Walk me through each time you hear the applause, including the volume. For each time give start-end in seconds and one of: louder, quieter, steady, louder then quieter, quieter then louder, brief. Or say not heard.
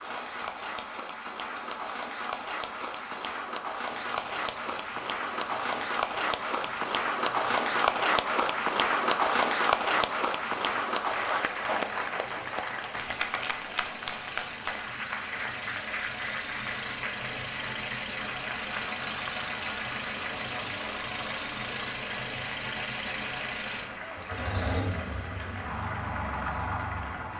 0.0-27.3 louder then quieter.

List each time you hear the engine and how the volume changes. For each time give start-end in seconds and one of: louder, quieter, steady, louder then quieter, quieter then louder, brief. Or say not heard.
0.0-27.3 louder.